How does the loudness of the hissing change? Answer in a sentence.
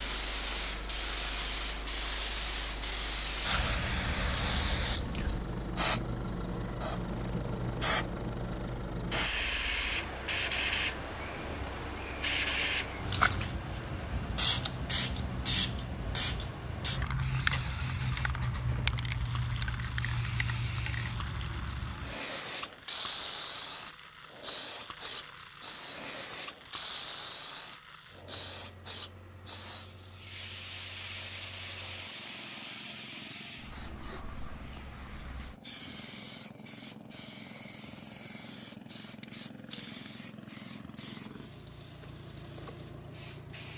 The volume of the hissing goes down.